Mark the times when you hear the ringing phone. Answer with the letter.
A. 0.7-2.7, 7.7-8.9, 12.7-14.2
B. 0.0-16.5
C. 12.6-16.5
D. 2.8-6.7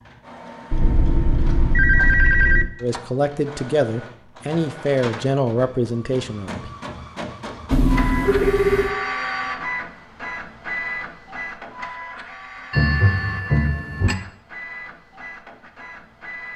A.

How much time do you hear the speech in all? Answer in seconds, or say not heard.
4 s.